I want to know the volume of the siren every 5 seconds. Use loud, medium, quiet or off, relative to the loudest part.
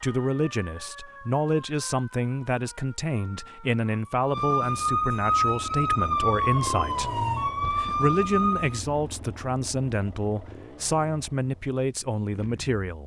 medium, loud, off.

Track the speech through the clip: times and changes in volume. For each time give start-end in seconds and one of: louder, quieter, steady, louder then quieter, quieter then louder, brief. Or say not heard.
0.0-13.0 steady.